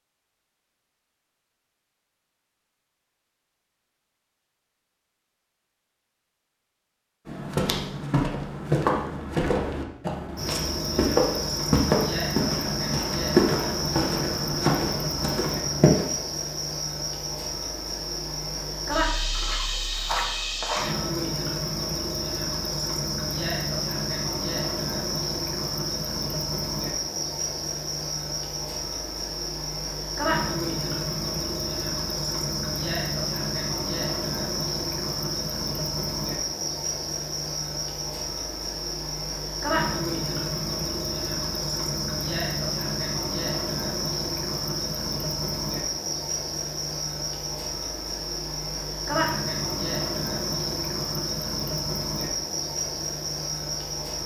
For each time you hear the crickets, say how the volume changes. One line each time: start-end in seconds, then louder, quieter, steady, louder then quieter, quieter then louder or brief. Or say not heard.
10.3-54.2 steady.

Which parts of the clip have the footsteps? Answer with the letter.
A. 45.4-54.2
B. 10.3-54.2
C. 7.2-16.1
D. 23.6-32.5
C.